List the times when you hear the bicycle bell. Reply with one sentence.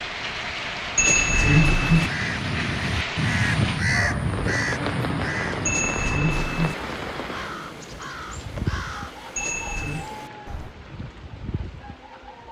The bicycle bell can be heard from 0.9 to 2.1 s, from 5.7 to 6.8 s and from 9.3 to 10.1 s.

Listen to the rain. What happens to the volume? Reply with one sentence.
The volume of the rain goes down.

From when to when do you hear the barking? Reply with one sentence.
The barking can't be heard in this clip.